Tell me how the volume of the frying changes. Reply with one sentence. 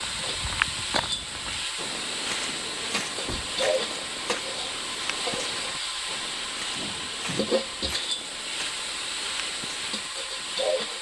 The loudness of the frying stays about the same.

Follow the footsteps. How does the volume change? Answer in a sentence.
The volume of the footsteps goes down.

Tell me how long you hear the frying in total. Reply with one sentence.
You can hear the frying for 11 seconds altogether.